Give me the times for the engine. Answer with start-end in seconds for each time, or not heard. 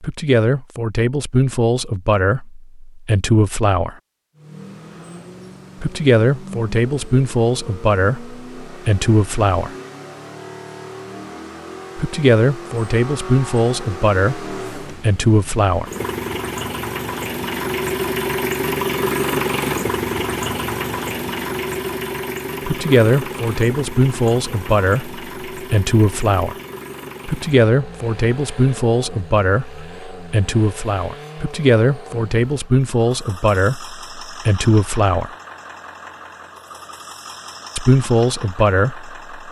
4.3-39.4.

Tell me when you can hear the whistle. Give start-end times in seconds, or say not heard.
not heard.